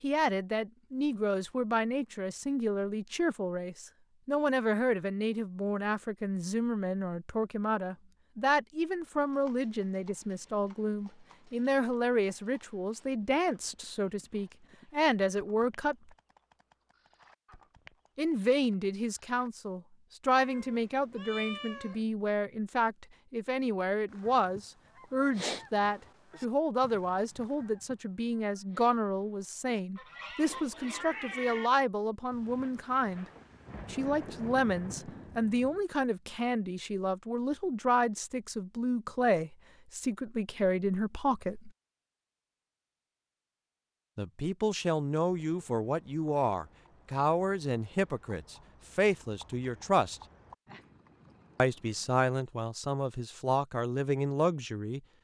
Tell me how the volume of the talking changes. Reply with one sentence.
The loudness of the talking stays about the same.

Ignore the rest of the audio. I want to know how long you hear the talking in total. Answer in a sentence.
The talking can be heard for 48 seconds in total.